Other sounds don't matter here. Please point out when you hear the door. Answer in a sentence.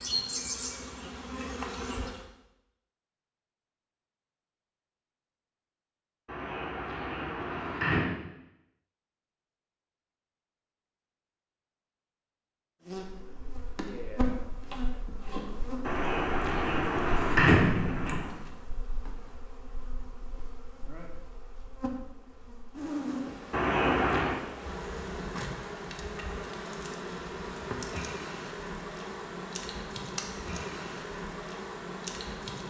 You can hear the door from 6.2 to 8.1 s, from 15.8 to 18.3 s and from 23.5 to 24.4 s.